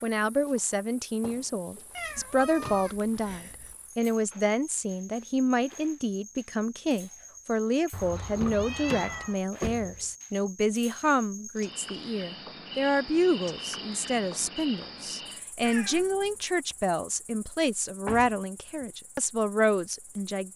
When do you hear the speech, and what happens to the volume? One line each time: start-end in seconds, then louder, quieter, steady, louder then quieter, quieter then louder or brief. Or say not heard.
0.0-20.5 steady.